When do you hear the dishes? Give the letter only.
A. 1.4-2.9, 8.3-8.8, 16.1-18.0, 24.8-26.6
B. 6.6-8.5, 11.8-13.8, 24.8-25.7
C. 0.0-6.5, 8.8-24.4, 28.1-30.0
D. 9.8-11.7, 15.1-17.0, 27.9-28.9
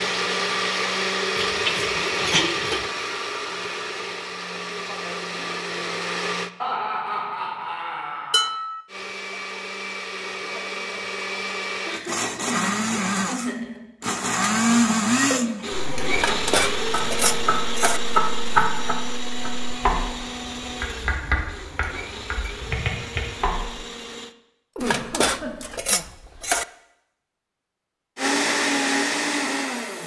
A.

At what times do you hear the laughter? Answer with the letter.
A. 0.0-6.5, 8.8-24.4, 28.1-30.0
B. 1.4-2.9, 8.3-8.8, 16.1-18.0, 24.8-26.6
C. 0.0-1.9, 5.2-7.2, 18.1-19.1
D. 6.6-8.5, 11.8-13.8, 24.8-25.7
D.